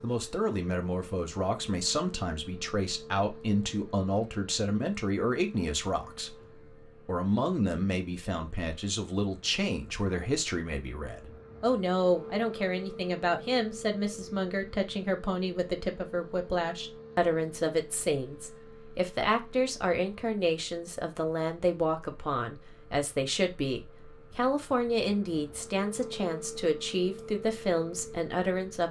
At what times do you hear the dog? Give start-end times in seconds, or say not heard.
not heard.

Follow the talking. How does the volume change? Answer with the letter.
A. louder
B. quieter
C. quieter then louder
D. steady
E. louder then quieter
D.